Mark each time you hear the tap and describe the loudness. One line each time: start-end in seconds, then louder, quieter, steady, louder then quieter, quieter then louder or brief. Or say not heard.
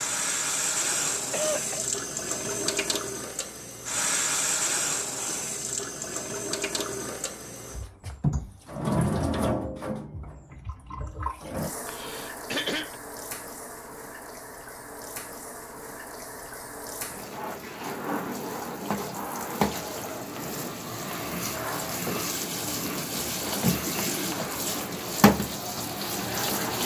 0.0-26.8 quieter then louder.